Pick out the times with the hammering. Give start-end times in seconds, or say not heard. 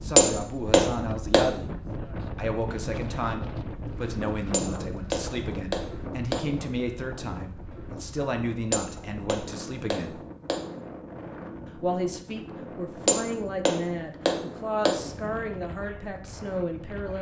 0.1-1.6, 4.5-6.5, 8.7-10.8, 13.1-15.1.